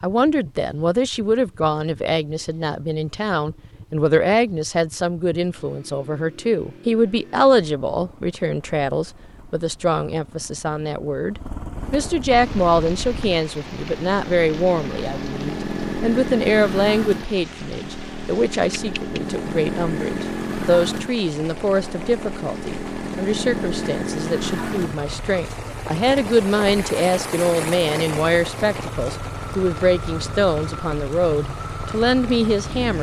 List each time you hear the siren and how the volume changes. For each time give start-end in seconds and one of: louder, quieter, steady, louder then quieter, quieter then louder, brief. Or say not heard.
not heard.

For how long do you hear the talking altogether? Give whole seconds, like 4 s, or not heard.
33 s.